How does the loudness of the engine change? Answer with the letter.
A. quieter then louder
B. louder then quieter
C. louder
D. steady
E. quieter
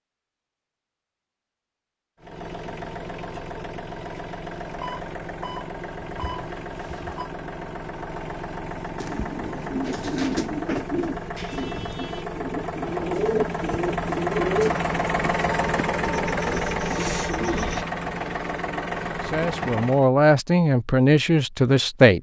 C.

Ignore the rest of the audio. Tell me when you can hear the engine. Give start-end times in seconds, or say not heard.
2.2-20.1.